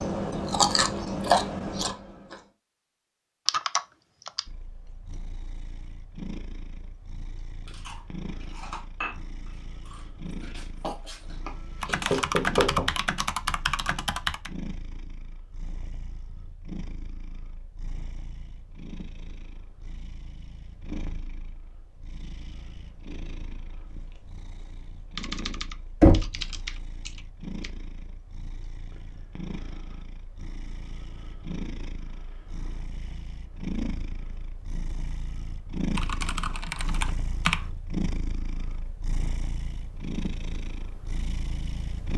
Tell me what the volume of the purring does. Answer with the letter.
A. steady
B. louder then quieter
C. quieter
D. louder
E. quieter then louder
D.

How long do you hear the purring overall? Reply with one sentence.
You can hear the purring for 38 seconds altogether.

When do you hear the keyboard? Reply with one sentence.
You can hear the keyboard from 3.5 to 4.4 s, from 11.8 to 14.5 s, from 25.1 to 27.7 s and from 36.0 to 37.6 s.